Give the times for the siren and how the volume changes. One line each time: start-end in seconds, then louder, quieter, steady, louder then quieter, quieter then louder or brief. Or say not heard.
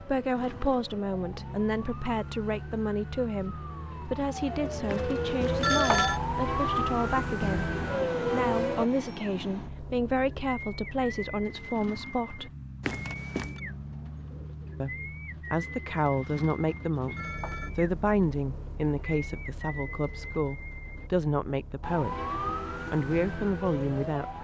0.0-8.9 louder
21.8-24.3 brief.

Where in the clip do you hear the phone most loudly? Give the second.
6 s.